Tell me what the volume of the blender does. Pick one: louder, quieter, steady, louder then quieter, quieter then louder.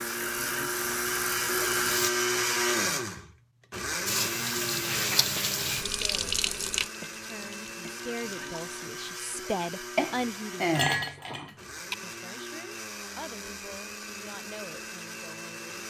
quieter.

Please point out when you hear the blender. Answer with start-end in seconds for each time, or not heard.
0.0-15.8.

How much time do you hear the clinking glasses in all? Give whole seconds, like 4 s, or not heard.
2 s.